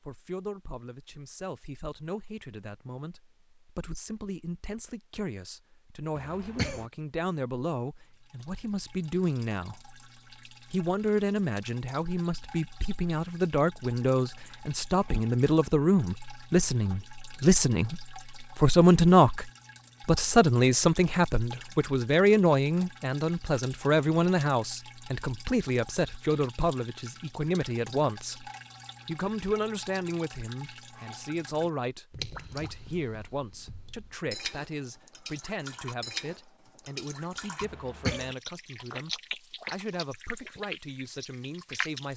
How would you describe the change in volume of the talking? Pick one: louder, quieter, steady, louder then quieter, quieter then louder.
louder then quieter.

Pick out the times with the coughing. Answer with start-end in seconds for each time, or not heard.
6.2-6.8, 37.6-38.4.